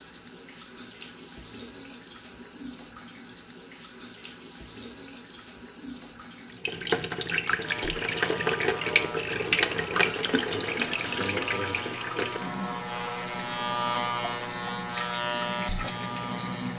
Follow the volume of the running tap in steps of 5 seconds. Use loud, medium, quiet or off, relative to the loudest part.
quiet, loud, loud, medium.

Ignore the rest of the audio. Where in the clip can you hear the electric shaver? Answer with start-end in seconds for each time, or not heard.
7.6-16.7.